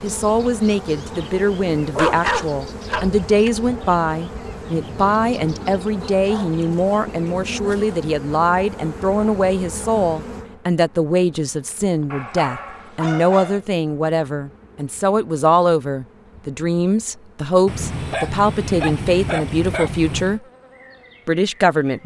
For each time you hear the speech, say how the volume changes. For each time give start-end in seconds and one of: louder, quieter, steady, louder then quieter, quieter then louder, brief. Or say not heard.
0.0-20.4 steady
21.2-22.0 brief.